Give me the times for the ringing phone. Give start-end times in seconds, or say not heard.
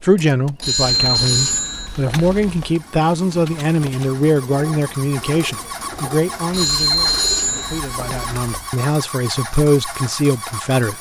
0.6-2.7, 6.5-8.7.